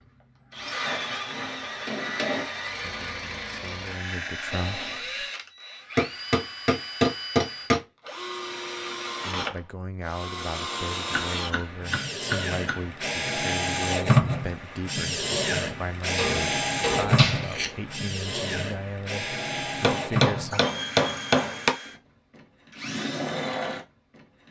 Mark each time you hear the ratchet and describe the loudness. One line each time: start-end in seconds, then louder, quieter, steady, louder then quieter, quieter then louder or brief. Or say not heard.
not heard.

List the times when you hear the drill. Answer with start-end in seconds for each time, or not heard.
0.5-24.4.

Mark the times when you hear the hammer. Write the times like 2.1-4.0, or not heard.
0.8-2.5, 6.0-7.8, 11.1-12.8, 16.1-17.8, 19.8-21.8.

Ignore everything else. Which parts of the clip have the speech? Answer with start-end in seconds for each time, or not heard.
2.9-5.2, 9.2-20.6.